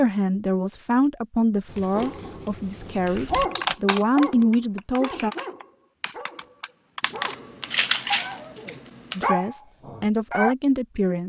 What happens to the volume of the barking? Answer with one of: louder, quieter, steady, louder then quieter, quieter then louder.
quieter then louder.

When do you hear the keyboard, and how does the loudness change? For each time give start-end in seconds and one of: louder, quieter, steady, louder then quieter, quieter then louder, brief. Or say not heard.
3.0-8.8 quieter then louder.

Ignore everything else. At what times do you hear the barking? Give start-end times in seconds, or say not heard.
1.9-10.6.